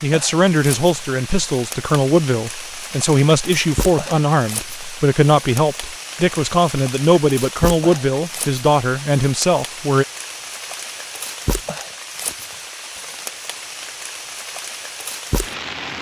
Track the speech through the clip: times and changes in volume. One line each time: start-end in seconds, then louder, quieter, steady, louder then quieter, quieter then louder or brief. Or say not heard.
0.0-10.1 steady.